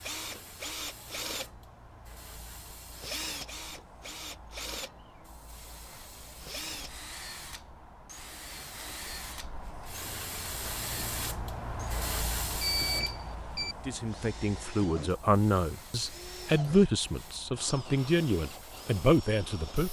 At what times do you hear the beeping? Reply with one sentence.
The beeping can be heard from 12.6 to 13.8 s.